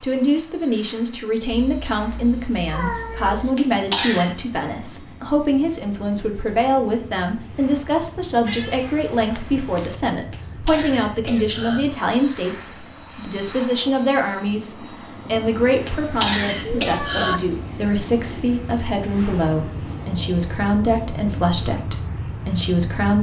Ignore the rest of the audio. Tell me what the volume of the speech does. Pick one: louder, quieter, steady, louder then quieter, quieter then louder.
steady.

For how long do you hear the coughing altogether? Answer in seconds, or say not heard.
4 s.